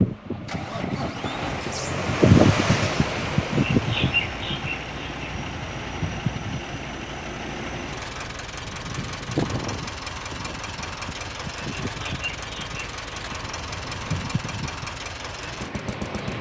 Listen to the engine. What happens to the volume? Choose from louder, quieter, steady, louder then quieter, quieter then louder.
steady.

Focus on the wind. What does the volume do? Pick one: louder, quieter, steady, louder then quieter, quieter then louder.
quieter.